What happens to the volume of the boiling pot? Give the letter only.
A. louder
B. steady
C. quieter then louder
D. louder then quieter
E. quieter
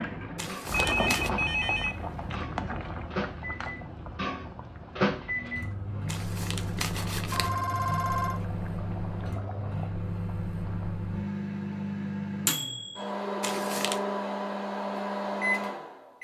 E.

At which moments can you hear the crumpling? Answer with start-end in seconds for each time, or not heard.
0.3-1.3, 6.0-7.5, 13.4-14.0.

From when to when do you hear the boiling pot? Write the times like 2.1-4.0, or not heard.
0.0-10.9.